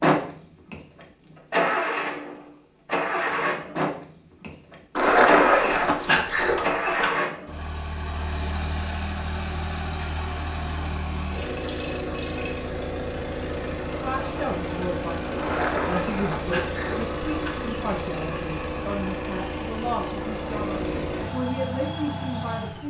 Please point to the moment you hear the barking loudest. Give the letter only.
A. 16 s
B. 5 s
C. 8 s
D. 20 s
B.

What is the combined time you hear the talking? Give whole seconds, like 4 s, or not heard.
9 s.